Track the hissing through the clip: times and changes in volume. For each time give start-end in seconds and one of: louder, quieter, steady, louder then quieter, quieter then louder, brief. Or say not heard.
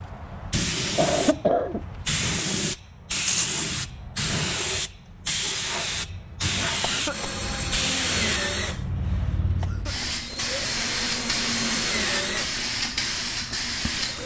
0.0-14.2 steady.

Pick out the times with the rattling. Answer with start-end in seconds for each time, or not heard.
3.1-3.6.